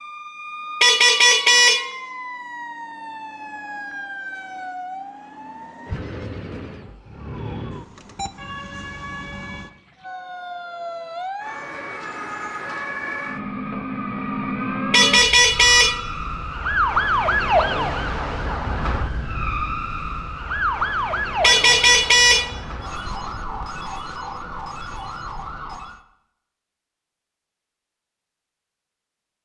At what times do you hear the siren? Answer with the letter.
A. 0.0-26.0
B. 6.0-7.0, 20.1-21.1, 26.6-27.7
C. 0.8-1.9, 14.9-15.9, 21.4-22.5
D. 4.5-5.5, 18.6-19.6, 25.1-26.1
A.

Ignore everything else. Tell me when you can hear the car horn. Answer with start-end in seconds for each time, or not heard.
0.8-1.9, 14.9-15.9, 21.4-22.5.